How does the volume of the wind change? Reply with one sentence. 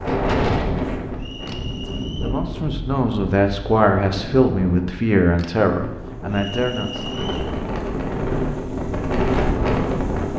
The volume of the wind goes down, then up.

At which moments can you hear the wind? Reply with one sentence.
You can hear the wind from 0.0 to 10.3 s.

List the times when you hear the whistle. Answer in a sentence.
The whistle can be heard from 1.1 to 2.4 s and from 6.3 to 7.5 s.